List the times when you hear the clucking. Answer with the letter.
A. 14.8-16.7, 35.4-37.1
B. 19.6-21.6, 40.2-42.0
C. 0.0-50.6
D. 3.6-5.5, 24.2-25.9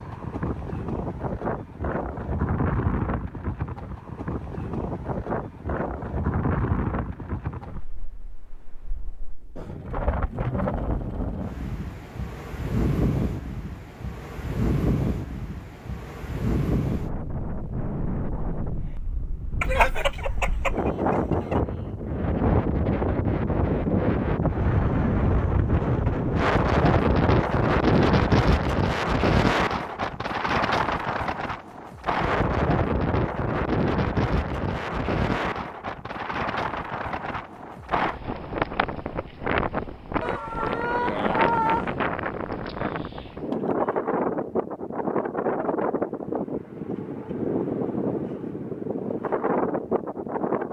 B.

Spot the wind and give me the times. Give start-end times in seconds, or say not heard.
0.0-50.6.